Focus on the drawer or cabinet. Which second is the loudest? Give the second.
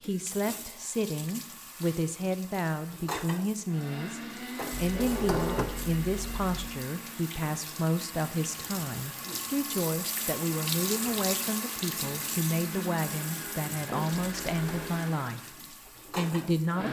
5 s.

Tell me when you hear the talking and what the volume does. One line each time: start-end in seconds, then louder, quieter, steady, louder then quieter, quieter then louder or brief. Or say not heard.
0.0-15.6 steady
16.1-16.8 brief.